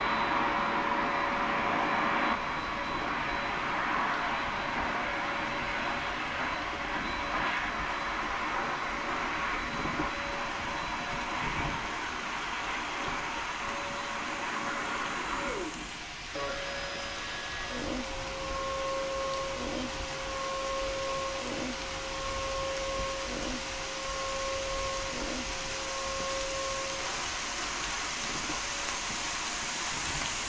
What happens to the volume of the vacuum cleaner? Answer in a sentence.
The volume of the vacuum cleaner goes down.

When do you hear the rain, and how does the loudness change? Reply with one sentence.
The rain can be heard from 0.0 to 30.4 s, getting louder.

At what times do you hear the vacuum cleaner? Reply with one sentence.
The vacuum cleaner can be heard from 0.0 to 30.4 s.